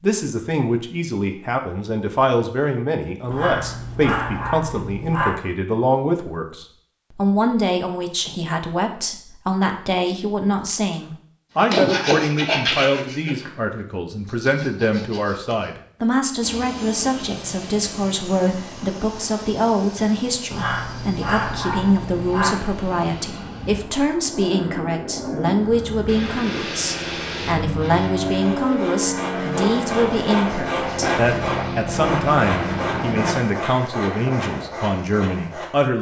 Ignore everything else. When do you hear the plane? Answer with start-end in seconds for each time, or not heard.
16.4-33.4.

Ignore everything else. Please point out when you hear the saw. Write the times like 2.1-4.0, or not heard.
11.7-15.7, 28.2-35.7.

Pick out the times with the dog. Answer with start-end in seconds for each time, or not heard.
3.3-5.3, 20.5-22.5.